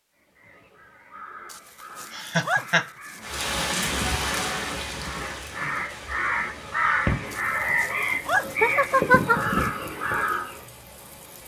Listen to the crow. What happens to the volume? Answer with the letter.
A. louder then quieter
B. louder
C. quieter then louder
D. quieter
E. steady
B.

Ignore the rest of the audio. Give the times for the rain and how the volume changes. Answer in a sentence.
You can hear the rain from 3.2 to 11.4 s, getting quieter.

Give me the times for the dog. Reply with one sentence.
You can hear the dog from 1.5 to 3.4 s and from 7.3 to 9.7 s.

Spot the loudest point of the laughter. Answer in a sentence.
The volume of the laughter peaks at 9 seconds.